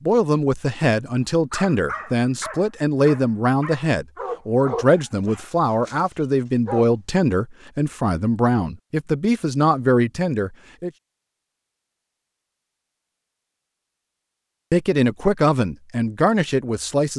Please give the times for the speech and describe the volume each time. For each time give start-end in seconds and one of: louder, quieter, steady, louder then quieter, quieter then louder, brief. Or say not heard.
0.0-10.9 steady
14.7-17.1 brief.